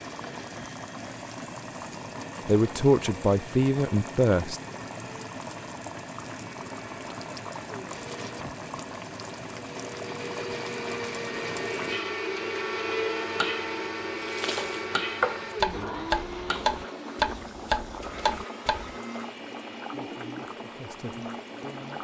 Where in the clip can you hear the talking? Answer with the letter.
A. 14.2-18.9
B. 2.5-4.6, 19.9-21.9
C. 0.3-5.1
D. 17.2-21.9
B.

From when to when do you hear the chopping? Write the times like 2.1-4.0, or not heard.
14.2-18.9.